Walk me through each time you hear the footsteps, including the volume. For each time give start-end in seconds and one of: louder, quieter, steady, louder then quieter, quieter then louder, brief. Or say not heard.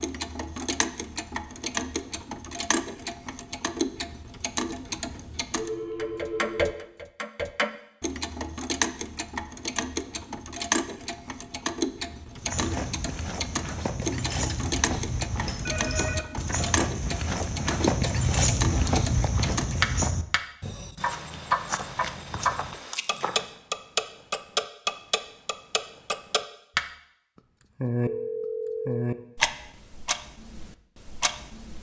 12.3-23.6 louder then quieter.